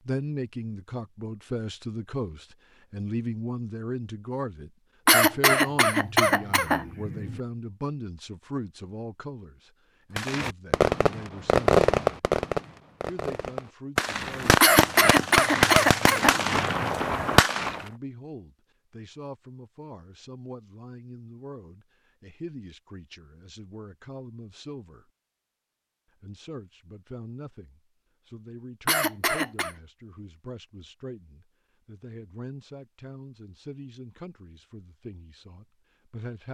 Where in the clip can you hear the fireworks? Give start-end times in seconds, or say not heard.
10.2-17.9.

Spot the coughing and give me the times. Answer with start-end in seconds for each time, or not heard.
5.0-7.4, 14.6-16.9, 28.9-29.8.